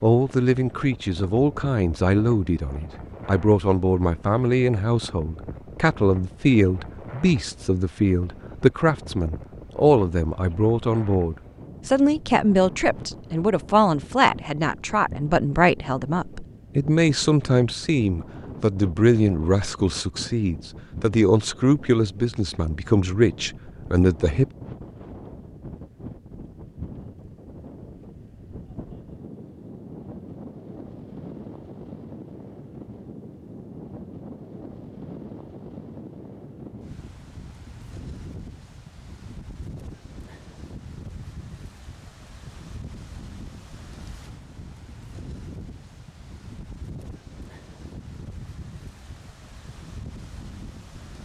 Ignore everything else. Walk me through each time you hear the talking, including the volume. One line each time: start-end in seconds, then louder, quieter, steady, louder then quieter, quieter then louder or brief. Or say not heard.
0.0-24.4 steady.